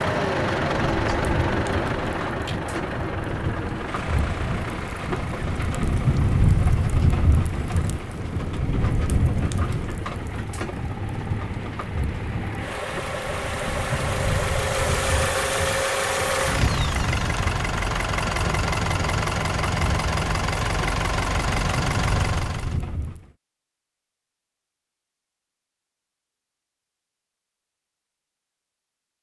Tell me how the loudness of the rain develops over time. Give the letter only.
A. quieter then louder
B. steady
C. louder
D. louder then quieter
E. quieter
D.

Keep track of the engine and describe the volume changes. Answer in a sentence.
The volume of the engine goes down, then up.